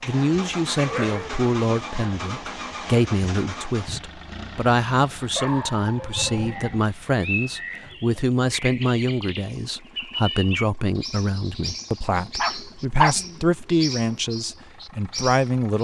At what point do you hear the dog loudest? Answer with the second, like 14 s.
13 s.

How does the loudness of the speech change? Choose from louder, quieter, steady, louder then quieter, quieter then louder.
steady.